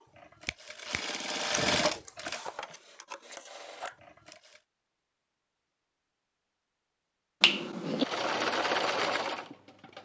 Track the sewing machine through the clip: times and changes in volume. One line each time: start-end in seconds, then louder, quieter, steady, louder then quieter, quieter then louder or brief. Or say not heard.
0.0-4.6 louder then quieter
8.0-10.0 brief.